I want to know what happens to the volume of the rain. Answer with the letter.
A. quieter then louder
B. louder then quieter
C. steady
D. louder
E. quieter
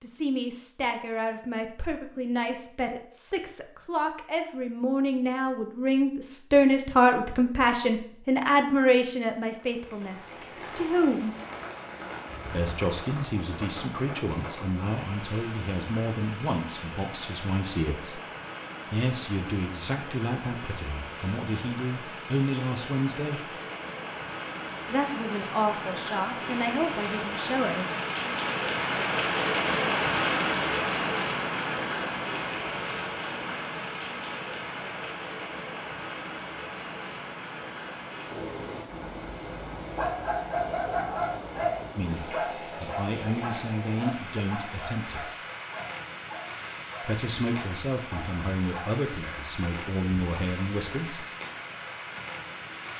B.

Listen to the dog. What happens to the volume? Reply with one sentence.
The loudness of the dog goes down.